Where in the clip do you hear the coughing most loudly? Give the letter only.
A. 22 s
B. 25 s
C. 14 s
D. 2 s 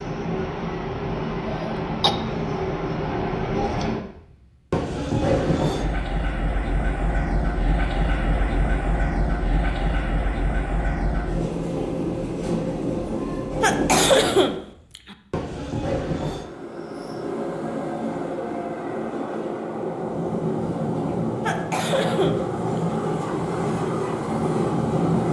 C.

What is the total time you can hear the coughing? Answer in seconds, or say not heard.
4 s.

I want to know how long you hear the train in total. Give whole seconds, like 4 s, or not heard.
25 s.